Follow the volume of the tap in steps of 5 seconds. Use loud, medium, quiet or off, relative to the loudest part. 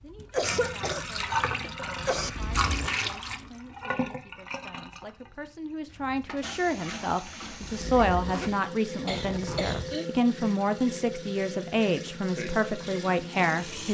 loud, medium, loud.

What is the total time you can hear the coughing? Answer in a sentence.
The coughing can be heard for 3 seconds in total.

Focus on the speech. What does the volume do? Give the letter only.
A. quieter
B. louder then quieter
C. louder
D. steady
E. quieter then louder
C.